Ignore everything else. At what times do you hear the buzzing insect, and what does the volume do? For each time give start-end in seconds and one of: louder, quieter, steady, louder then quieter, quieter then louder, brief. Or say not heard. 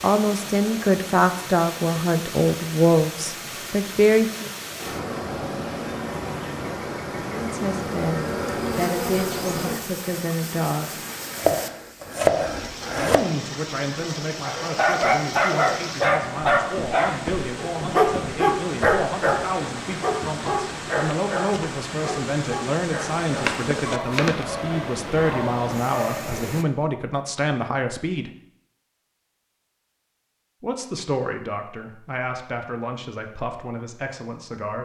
4.8-9.8 louder.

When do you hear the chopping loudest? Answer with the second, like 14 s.
12 s.